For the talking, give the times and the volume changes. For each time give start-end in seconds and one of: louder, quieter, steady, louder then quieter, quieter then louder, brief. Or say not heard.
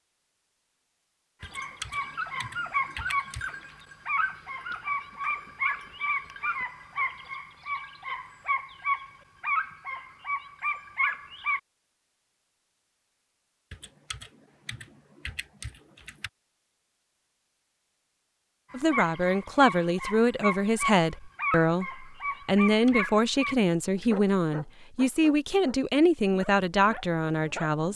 18.7-27.9 steady.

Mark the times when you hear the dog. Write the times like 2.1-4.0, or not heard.
1.4-11.6, 18.7-27.9.